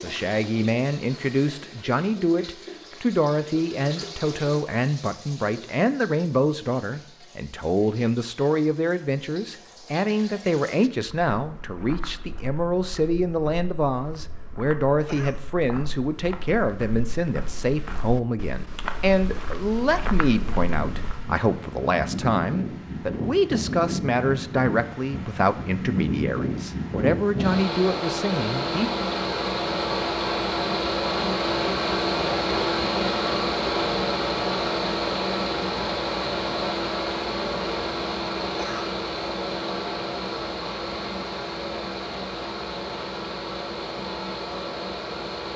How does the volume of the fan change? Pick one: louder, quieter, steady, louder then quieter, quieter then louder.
louder then quieter.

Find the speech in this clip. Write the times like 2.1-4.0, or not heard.
0.0-28.9.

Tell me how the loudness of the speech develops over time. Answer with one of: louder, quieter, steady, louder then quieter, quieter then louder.
steady.